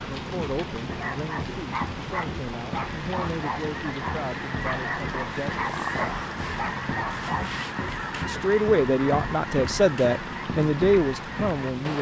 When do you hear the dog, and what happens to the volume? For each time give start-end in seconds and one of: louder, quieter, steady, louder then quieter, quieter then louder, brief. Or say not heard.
0.9-7.5 steady.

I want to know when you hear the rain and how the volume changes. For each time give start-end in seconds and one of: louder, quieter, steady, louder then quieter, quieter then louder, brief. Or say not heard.
0.0-11.9 steady.